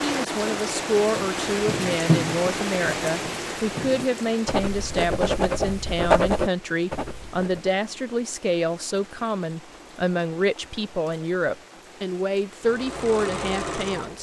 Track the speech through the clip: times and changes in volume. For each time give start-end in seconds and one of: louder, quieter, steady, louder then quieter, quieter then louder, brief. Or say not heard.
0.0-14.1 steady.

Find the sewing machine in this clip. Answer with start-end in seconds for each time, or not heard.
12.6-14.1.